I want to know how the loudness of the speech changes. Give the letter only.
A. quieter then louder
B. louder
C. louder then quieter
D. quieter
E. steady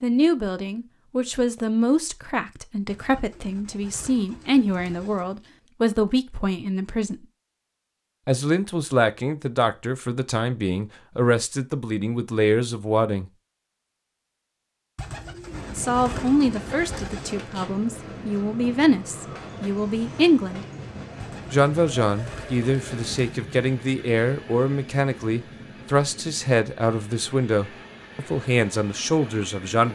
E.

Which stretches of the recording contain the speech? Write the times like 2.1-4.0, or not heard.
0.0-7.2, 8.2-13.3, 15.8-20.6, 21.5-29.9.